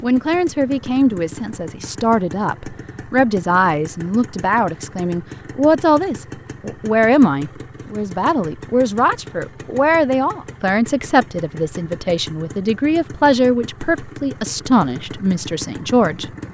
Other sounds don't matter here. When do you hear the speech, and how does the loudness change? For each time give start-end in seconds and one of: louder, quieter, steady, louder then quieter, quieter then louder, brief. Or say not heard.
0.0-16.2 steady.